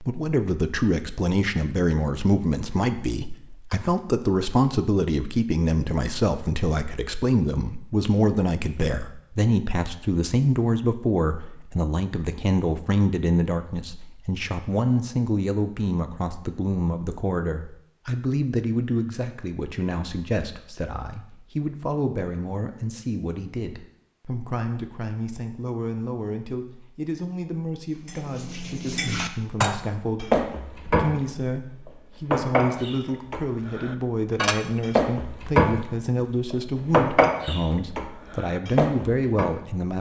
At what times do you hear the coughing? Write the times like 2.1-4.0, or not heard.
not heard.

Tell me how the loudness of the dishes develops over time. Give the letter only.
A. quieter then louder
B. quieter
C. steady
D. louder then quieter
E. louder
D.